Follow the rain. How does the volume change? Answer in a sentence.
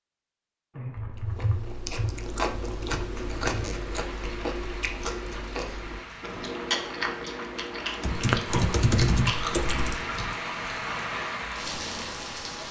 The loudness of the rain goes up.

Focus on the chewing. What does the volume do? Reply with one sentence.
The volume of the chewing stays about the same.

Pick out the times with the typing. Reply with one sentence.
The typing can be heard from 0.8 to 3.6 s and from 8.0 to 9.9 s.